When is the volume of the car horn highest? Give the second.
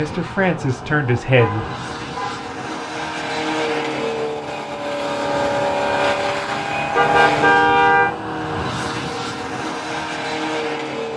8 s.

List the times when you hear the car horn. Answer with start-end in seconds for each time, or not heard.
1.4-2.5, 7.0-8.1.